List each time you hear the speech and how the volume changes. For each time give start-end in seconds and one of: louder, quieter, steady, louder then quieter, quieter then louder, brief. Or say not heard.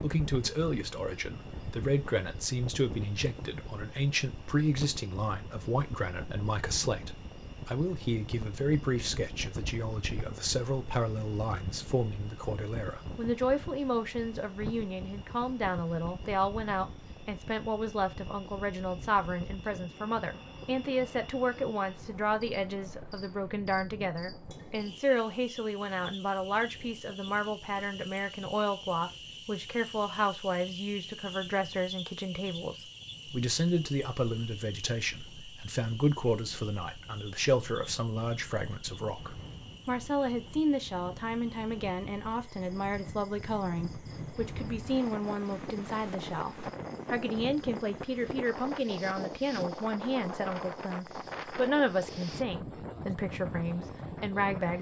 0.0-54.7 steady.